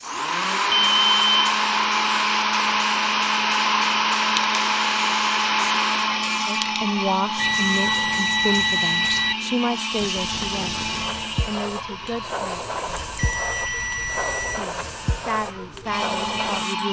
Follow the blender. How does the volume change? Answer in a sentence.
The volume of the blender goes down.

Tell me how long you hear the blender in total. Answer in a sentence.
You can hear the blender for 17 seconds altogether.